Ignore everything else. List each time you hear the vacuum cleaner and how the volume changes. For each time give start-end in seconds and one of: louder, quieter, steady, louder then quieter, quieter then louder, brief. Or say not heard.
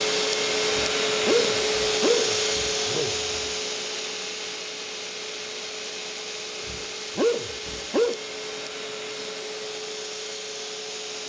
0.0-11.2 quieter.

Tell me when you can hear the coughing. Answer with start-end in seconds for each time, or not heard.
not heard.